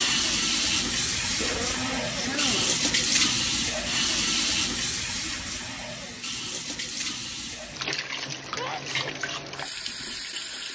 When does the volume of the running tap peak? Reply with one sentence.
The volume of the running tap peaks at 3 seconds.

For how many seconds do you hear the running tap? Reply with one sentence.
You can hear the running tap for 11 seconds altogether.